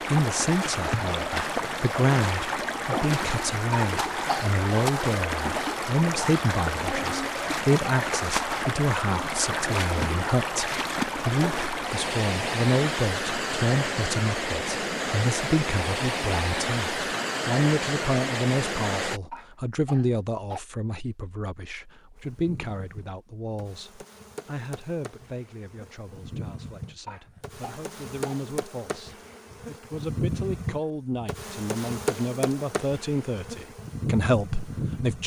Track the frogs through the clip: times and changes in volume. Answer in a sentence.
You can't hear the frogs here.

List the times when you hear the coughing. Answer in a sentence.
The coughing can be heard from 3.7 to 4.5 s, from 19.3 to 20.6 s and from 27.1 to 28.4 s.